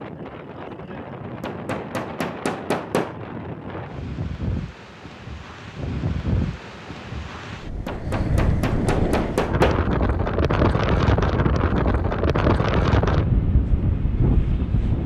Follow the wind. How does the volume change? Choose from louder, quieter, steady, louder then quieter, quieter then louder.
louder.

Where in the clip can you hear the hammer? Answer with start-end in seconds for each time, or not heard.
1.4-3.1, 7.8-9.8.